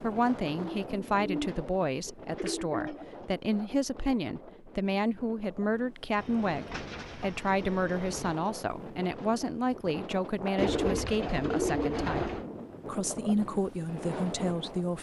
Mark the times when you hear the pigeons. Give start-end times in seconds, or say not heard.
0.6-3.2, 6.2-8.4, 10.6-12.4.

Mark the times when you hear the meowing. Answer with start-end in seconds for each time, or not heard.
not heard.